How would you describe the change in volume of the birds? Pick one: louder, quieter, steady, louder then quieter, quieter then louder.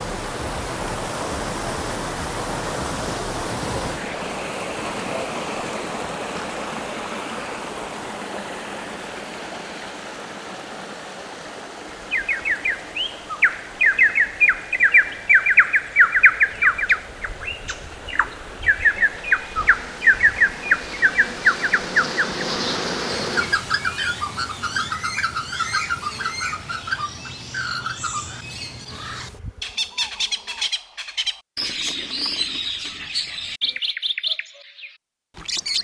quieter.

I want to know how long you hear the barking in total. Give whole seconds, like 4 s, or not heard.
not heard.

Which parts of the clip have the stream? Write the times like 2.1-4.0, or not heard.
0.0-23.4.